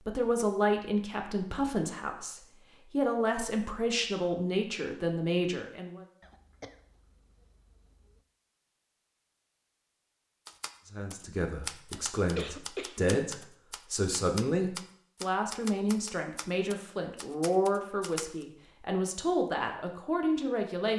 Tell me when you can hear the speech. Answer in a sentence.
The speech can be heard from 0.1 to 6.0 s and from 10.8 to 20.9 s.